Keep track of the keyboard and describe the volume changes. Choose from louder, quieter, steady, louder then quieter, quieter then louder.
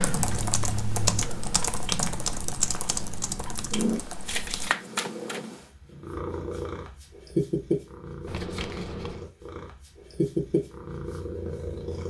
quieter.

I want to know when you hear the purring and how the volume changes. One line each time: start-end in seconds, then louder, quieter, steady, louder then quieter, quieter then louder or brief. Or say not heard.
0.0-12.0 louder.